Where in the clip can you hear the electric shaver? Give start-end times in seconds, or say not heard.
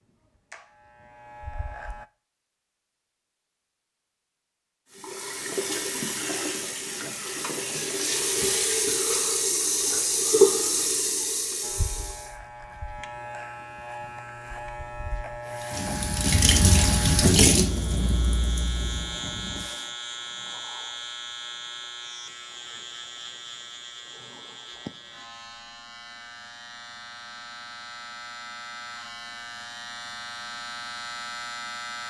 0.0-2.1, 11.6-32.0.